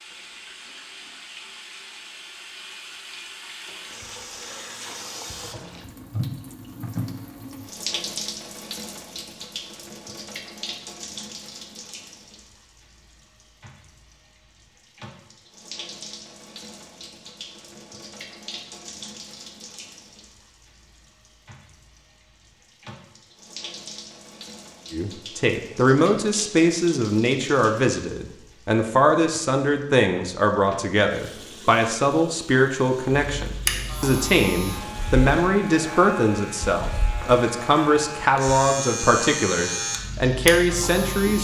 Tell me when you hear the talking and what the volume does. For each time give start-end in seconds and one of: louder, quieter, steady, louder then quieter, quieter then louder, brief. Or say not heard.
24.9-41.3 steady.